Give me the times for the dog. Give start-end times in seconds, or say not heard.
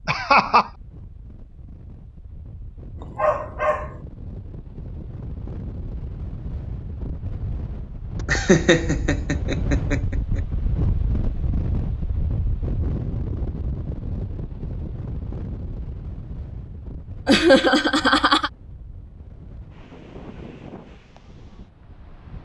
3.0-4.0.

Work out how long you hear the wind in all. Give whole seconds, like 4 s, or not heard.
22 s.